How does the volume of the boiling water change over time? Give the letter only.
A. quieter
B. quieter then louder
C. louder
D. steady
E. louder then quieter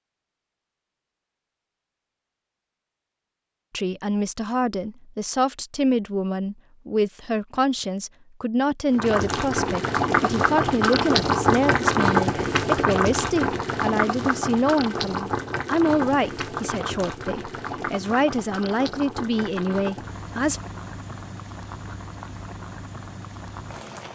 A.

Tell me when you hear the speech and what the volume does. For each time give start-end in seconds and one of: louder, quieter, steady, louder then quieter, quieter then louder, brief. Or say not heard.
3.7-20.6 steady.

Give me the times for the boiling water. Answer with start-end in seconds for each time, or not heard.
8.9-24.1.